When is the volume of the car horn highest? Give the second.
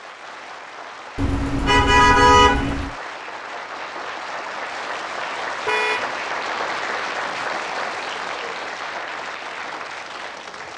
2 s.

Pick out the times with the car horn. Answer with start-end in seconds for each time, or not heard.
1.1-3.0, 5.7-6.1.